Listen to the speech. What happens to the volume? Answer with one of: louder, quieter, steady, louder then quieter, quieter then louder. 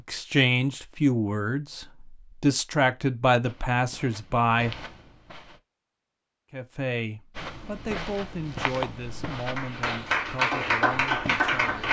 quieter.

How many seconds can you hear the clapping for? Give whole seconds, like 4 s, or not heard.
2 s.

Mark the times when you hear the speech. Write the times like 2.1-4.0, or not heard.
0.1-4.8, 6.5-11.8.